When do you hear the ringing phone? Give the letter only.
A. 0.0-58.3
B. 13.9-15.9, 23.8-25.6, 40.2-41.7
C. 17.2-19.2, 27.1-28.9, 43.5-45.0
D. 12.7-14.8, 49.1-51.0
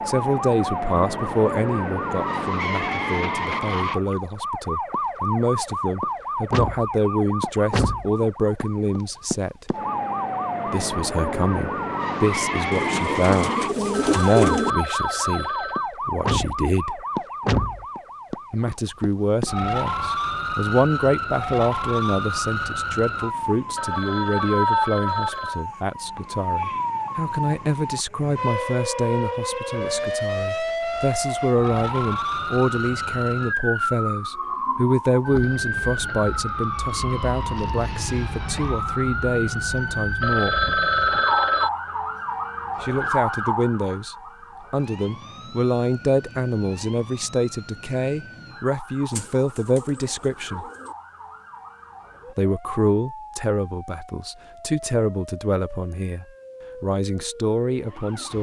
B.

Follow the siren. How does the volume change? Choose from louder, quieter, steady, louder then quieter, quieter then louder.
quieter.